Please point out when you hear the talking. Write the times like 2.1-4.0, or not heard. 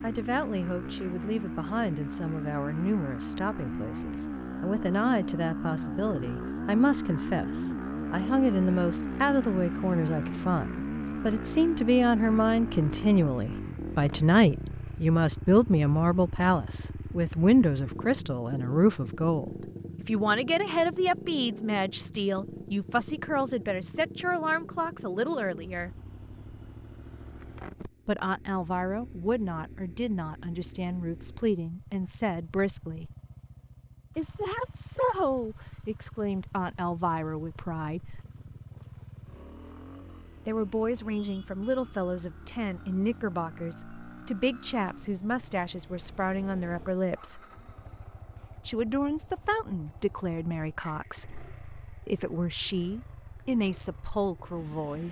0.0-25.9, 28.1-33.1, 34.1-38.2, 40.5-47.4, 48.6-55.0.